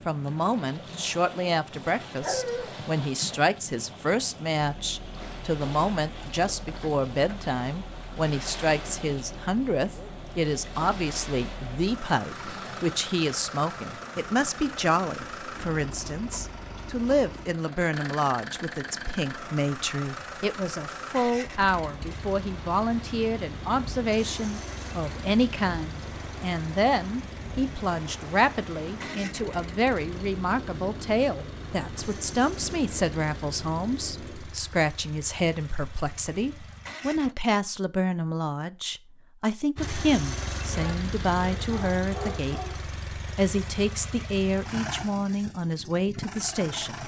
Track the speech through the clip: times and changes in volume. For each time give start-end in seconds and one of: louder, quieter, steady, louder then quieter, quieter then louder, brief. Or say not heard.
0.1-47.0 steady.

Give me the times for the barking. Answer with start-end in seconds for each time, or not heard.
2.2-2.6, 40.7-42.8.